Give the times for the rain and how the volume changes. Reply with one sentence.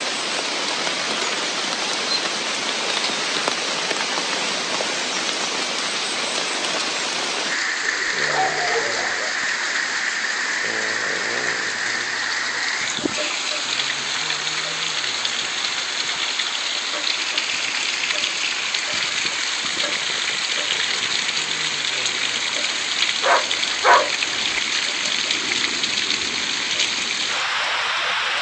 The rain can be heard from 0.0 to 28.3 s, at a steady volume.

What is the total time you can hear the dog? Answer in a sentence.
You can hear the dog for 3 seconds altogether.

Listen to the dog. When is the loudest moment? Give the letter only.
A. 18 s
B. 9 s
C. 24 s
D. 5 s
C.